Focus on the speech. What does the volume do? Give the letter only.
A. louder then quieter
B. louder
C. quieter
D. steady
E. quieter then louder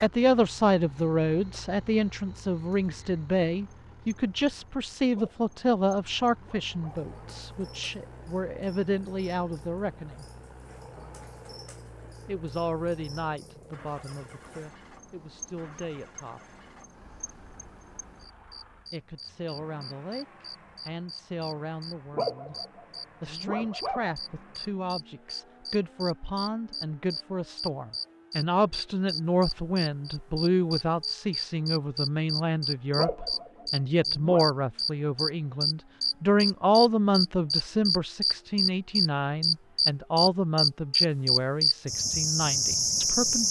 E.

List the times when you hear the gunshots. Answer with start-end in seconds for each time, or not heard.
not heard.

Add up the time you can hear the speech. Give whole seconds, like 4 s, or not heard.
38 s.